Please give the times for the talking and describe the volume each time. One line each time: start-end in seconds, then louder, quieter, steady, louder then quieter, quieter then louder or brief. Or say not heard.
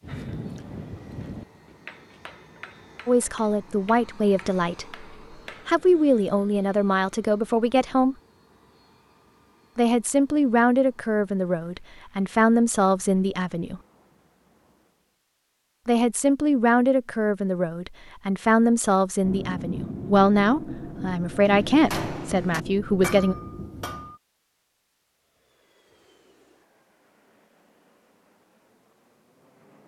3.0-5.0 brief
5.7-8.2 brief
9.8-13.8 quieter then louder
15.8-23.4 steady.